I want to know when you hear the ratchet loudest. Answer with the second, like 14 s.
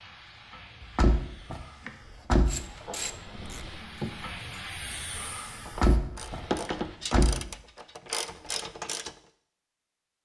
7 s.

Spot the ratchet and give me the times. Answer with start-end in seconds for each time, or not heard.
2.5-9.2.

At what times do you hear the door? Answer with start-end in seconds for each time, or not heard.
0.8-2.6, 5.7-7.4.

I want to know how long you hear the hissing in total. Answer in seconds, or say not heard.
7 s.